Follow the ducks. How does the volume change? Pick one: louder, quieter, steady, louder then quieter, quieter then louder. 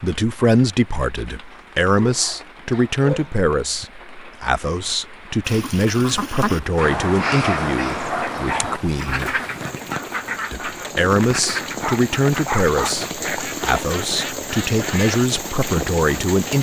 quieter.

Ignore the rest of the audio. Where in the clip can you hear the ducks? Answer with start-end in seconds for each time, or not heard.
5.5-15.3.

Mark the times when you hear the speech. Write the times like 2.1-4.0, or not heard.
0.0-9.4, 10.5-16.5.